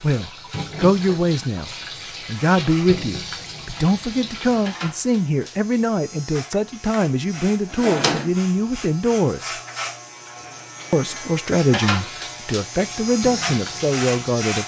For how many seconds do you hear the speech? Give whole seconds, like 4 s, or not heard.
13 s.